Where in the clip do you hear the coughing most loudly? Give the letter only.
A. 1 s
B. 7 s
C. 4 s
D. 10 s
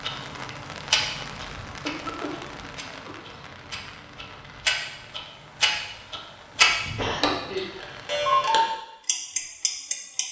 B.